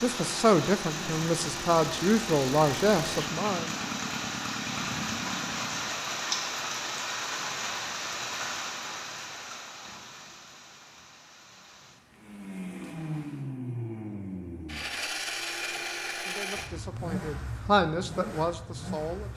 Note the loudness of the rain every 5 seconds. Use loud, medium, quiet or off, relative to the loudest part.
loud, loud, quiet, off.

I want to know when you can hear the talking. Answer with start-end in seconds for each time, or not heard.
0.0-3.7, 15.7-19.3.